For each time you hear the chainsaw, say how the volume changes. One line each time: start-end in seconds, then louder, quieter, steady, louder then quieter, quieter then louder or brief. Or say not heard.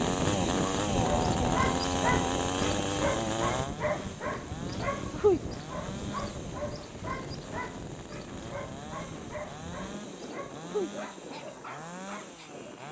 0.0-12.8 quieter.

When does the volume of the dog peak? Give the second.
5 s.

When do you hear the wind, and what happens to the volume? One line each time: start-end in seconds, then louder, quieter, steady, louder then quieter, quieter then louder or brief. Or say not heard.
0.0-12.8 quieter.